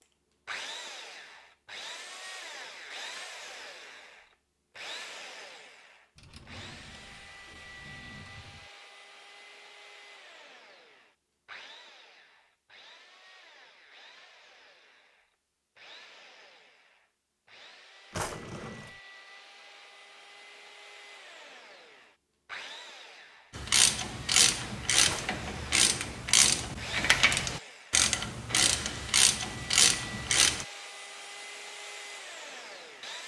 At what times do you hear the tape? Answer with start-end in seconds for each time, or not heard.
not heard.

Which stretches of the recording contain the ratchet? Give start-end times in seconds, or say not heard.
23.6-30.6.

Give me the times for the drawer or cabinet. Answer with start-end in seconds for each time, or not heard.
6.2-8.7, 18.1-18.9, 25.0-25.8.